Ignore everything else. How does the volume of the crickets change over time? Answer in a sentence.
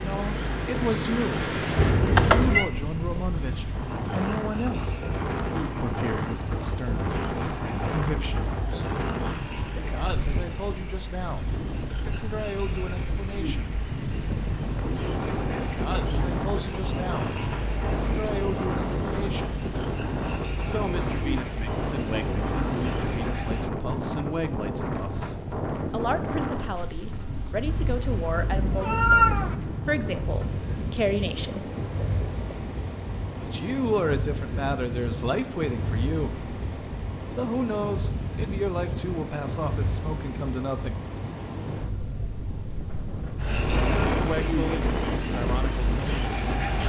The loudness of the crickets goes up.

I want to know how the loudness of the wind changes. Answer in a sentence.
The volume of the wind stays about the same.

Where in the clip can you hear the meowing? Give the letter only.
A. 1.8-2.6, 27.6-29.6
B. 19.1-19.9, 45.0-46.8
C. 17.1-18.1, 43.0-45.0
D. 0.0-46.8
A.